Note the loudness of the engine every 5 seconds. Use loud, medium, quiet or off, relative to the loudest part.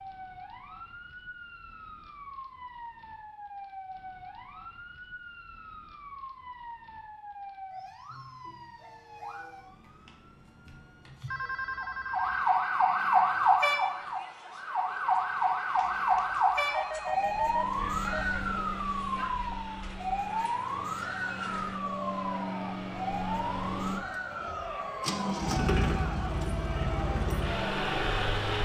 off, off, off, medium, medium, loud.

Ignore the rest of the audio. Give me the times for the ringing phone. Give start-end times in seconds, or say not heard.
11.2-12.4, 15.9-18.2.